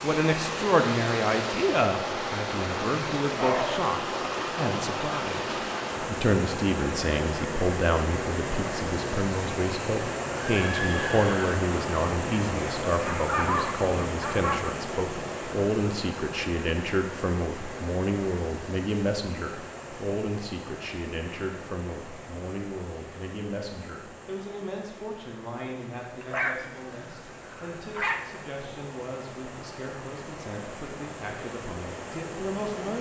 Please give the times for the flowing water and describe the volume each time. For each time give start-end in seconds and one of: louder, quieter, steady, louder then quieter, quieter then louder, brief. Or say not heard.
0.0-32.9 quieter.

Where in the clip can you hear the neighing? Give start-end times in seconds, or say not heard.
10.4-11.7.